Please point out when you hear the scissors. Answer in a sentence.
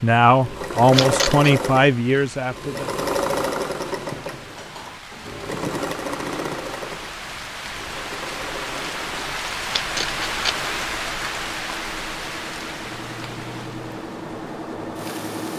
You can hear the scissors from 0.9 to 1.5 s and from 9.7 to 10.6 s.